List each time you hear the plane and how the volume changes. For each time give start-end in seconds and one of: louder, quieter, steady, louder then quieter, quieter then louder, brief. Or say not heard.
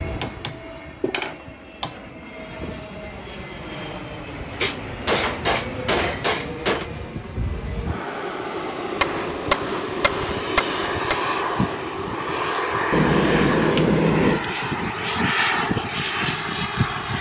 0.0-17.1 louder.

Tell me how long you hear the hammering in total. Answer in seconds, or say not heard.
8 s.